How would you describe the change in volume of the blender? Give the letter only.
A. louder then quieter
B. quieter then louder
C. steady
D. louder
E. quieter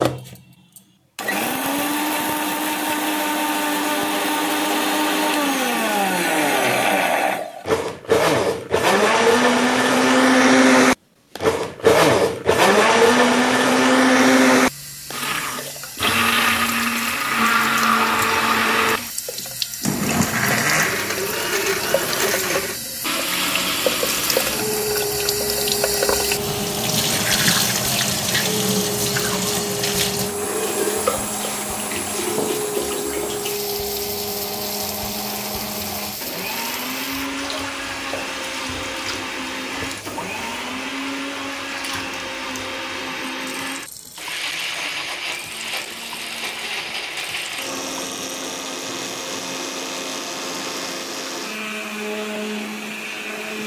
E.